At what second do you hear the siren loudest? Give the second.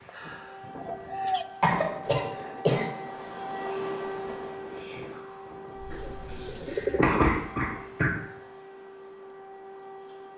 4 s.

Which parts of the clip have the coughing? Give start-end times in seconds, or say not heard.
1.6-2.9, 7.0-8.1.